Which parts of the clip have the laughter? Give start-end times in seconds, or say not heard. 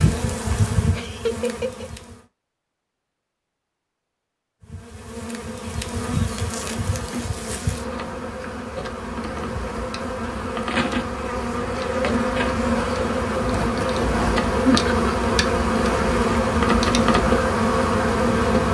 0.9-1.9.